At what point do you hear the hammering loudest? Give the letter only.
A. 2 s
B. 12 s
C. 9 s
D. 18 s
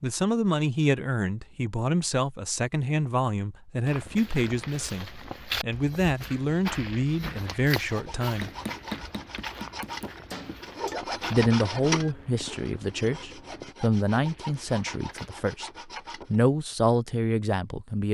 C.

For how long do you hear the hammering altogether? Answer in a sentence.
The hammering can be heard for 3 seconds in total.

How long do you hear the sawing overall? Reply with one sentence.
The sawing can be heard for 9 seconds in total.